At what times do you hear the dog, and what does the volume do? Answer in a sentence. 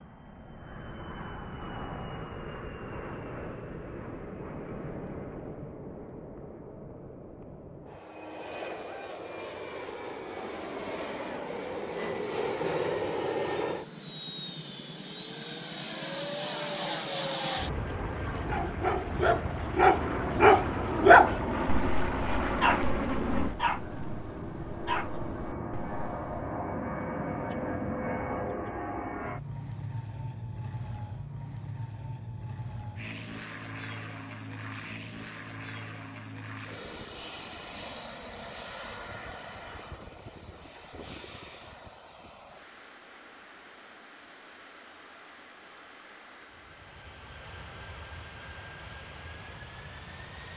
The dog can be heard from 18.3 to 26.4 s, getting louder then quieter.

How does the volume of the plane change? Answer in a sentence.
The loudness of the plane goes up, then down.